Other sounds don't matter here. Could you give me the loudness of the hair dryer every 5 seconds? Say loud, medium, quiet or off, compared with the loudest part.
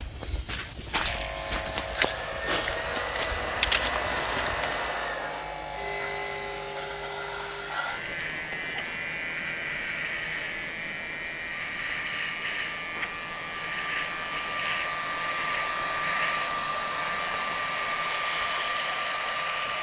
loud, medium, medium, loud.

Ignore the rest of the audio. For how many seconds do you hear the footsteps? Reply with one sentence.
You can hear the footsteps for 5 seconds altogether.